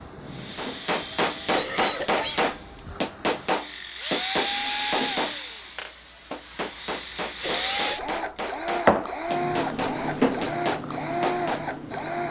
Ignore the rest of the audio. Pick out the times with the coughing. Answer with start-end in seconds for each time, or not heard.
1.5-3.0, 7.4-8.0.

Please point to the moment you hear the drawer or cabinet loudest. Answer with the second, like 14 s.
10 s.